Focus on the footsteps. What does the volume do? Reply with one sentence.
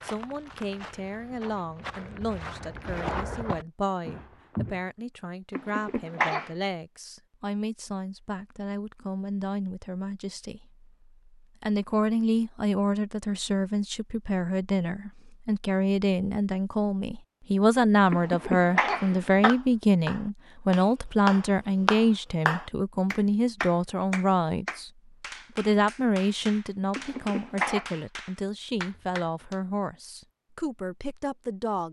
The loudness of the footsteps goes up, then down.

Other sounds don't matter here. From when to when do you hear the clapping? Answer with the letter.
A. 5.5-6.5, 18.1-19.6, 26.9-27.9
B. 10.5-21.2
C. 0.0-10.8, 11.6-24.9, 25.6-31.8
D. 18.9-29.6
D.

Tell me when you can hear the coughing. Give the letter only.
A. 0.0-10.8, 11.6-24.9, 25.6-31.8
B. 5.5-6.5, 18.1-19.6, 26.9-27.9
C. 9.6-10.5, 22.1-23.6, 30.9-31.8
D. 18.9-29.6
B.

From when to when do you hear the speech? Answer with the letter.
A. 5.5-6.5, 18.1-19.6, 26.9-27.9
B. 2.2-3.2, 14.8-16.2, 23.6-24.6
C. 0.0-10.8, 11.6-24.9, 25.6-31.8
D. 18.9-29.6
C.